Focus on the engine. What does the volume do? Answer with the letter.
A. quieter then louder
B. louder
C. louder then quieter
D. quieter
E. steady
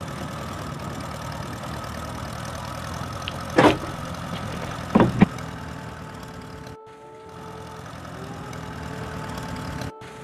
A.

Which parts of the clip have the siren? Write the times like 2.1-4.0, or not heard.
5.5-10.1.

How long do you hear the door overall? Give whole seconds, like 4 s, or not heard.
2 s.